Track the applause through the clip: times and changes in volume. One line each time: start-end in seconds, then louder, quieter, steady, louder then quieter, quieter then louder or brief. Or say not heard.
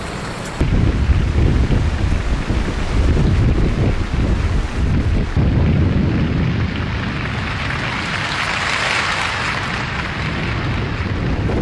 0.0-11.5 louder.